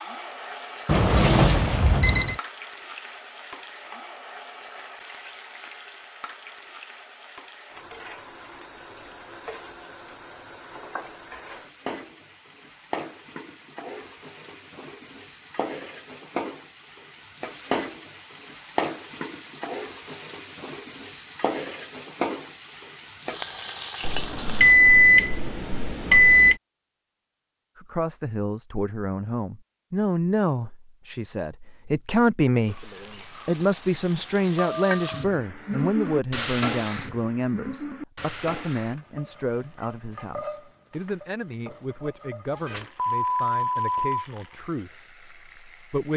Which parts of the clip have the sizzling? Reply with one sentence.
The sizzling can be heard from 0.0 to 24.8 s and from 32.6 to 46.1 s.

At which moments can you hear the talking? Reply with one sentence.
You can hear the talking from 27.8 to 46.1 s.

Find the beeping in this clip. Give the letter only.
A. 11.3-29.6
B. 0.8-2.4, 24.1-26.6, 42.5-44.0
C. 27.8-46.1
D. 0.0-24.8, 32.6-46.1
B.